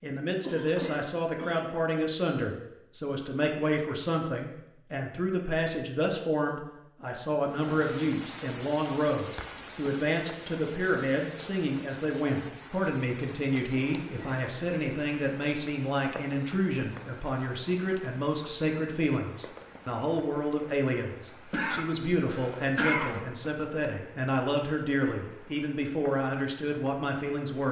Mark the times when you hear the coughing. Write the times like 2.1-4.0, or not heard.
0.4-1.8, 14.0-14.4, 21.4-23.4.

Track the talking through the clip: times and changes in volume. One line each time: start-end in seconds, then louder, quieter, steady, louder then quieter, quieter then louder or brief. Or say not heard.
0.0-27.6 steady.